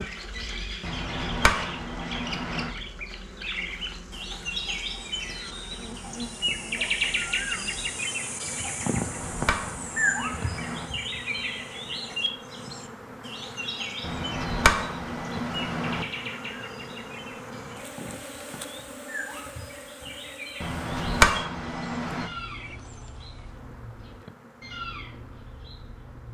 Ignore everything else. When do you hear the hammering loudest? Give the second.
21 s.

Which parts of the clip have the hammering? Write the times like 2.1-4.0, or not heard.
0.8-2.8, 8.8-10.9, 14.0-16.1, 20.6-22.3.